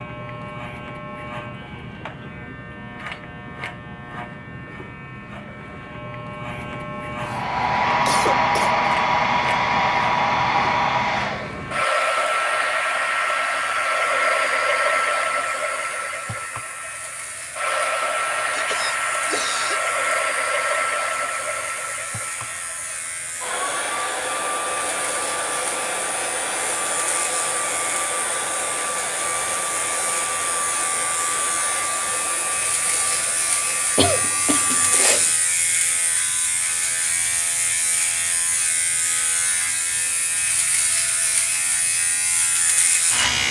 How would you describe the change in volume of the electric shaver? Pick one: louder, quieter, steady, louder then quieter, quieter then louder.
louder.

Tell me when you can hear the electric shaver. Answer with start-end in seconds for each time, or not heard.
0.0-43.4.